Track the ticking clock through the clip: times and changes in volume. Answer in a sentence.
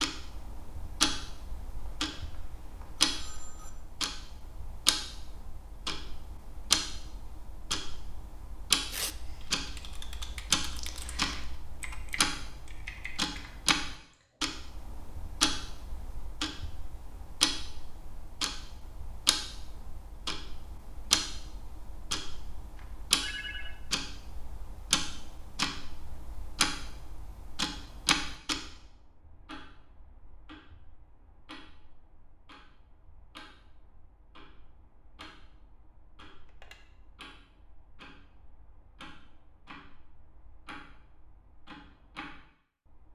You can hear the ticking clock from 0.0 to 43.0 s, getting quieter.